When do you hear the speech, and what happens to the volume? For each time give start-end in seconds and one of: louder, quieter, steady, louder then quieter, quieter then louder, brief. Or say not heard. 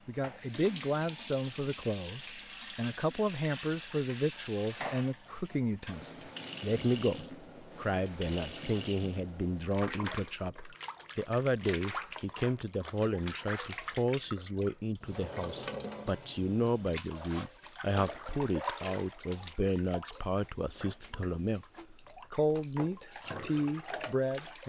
0.1-21.6 steady
22.3-24.6 brief.